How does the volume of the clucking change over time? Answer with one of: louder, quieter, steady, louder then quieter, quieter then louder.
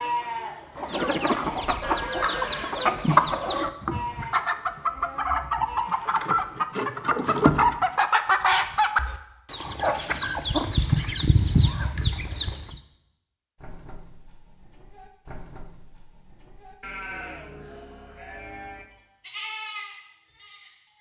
steady.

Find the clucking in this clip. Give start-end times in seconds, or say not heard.
0.8-12.8.